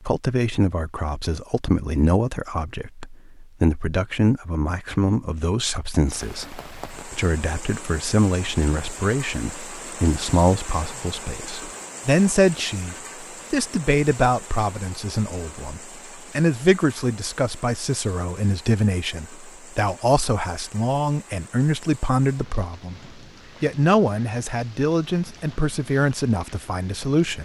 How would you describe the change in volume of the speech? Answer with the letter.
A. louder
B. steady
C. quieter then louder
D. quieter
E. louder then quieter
B.